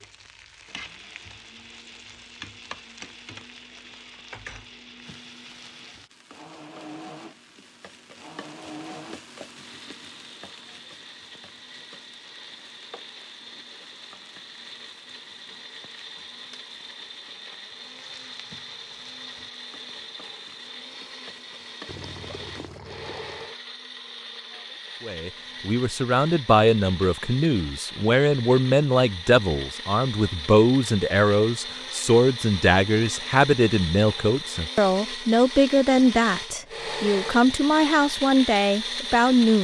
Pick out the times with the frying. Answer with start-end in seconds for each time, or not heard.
0.0-22.8.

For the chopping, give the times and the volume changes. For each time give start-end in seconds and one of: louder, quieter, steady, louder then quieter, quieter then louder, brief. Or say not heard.
not heard.